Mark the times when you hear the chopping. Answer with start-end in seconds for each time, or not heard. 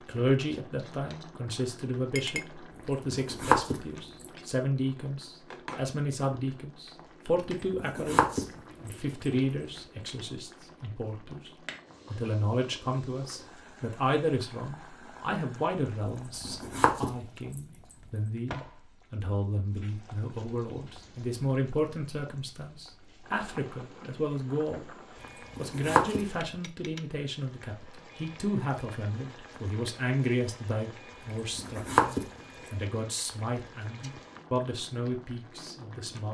3.1-4.2, 7.8-8.9, 16.4-17.6, 25.6-26.2, 31.6-32.2.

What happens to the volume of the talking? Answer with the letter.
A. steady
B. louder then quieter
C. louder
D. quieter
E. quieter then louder
A.